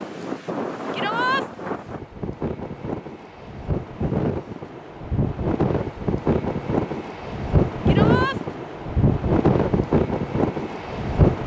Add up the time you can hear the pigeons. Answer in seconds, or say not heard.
not heard.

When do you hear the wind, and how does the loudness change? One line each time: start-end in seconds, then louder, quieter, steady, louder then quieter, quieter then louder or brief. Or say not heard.
0.0-11.4 louder.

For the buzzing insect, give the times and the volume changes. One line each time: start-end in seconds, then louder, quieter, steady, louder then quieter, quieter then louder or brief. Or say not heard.
not heard.